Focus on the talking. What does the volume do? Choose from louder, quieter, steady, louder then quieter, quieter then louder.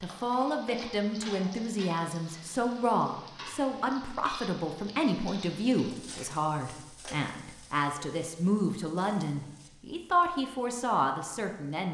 steady.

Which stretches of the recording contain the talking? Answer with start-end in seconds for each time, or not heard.
0.0-11.8.